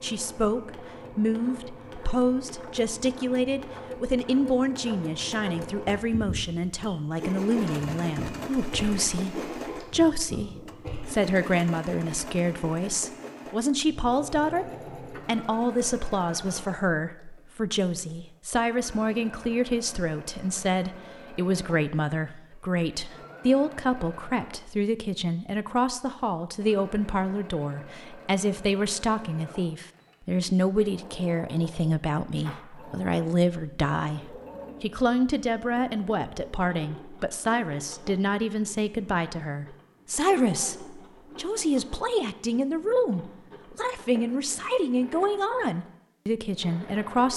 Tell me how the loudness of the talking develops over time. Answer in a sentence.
The loudness of the talking stays about the same.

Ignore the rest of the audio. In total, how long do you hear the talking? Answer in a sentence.
The talking can be heard for 47 seconds in total.